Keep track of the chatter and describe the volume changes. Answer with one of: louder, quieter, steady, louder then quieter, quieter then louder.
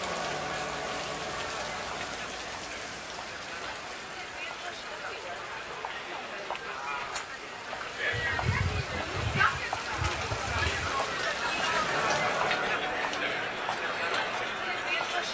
louder.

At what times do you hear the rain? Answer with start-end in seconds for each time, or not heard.
0.0-12.6.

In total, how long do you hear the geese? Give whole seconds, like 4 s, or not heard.
3 s.